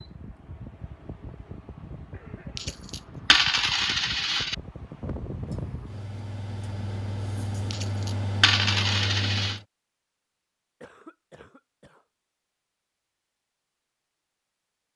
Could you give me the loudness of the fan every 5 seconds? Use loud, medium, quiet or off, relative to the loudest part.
medium, loud, off.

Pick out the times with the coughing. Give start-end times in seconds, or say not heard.
2.1-2.8, 5.5-7.8, 10.8-12.1.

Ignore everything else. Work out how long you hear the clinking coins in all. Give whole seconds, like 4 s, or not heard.
4 s.